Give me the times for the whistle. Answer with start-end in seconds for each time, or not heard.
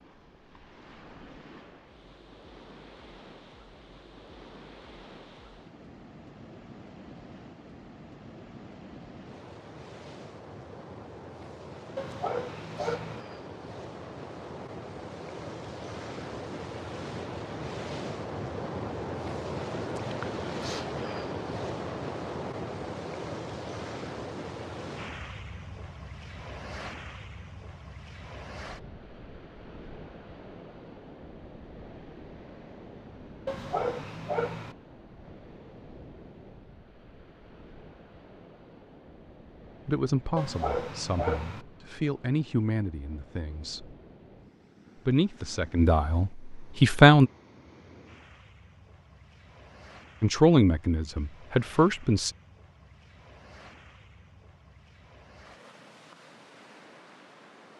not heard.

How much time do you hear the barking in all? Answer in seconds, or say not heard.
4 s.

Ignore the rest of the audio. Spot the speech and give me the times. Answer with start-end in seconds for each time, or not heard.
39.9-44.0, 45.0-47.3, 50.2-52.3.